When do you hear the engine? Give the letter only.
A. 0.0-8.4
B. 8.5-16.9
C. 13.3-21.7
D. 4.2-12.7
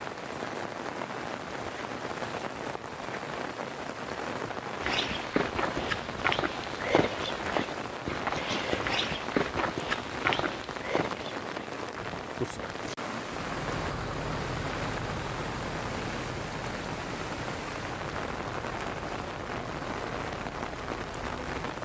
C.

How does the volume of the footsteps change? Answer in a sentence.
The loudness of the footsteps goes down.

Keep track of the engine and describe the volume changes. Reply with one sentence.
The volume of the engine goes down.